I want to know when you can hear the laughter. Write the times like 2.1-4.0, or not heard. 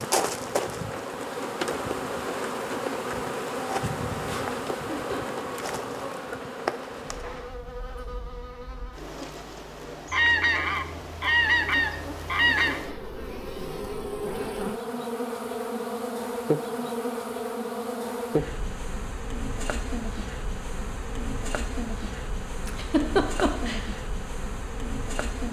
4.8-5.5, 22.6-23.9.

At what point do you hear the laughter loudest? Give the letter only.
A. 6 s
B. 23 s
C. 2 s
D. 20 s
B.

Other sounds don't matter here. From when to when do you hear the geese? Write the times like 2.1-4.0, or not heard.
10.1-12.8.